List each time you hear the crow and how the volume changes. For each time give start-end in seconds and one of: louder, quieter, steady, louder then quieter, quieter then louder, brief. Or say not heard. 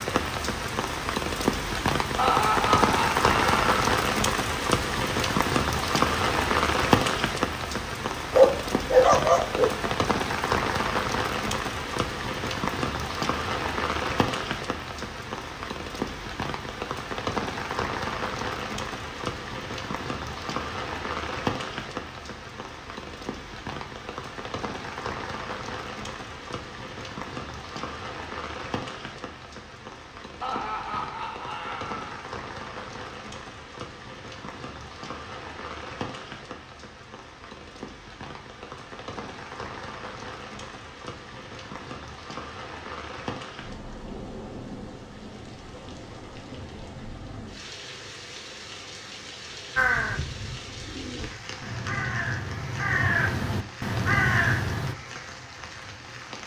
49.8-55.0 louder.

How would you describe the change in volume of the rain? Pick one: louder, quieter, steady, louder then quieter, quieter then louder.
quieter.